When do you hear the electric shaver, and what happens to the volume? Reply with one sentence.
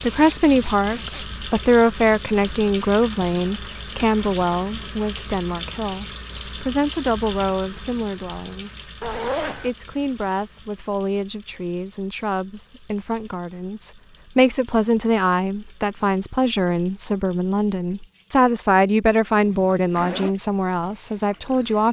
The electric shaver can't be heard in this clip.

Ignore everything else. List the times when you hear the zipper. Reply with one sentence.
You can hear the zipper from 0.1 to 1.2 s, from 9.0 to 9.7 s and from 19.6 to 20.4 s.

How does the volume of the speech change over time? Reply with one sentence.
The volume of the speech goes down, then up.